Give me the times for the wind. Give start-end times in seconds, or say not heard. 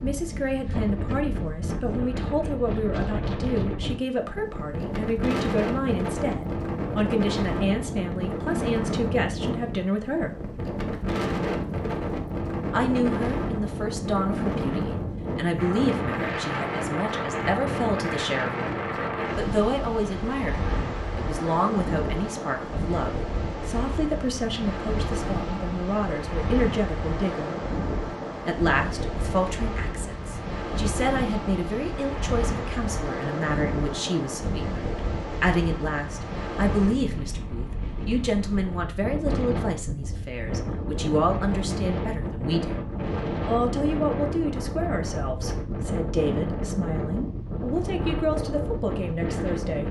0.0-49.8.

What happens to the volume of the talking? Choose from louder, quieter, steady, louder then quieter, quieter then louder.
steady.